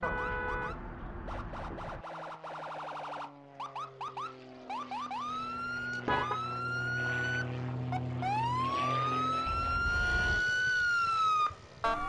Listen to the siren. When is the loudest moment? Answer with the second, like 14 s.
11 s.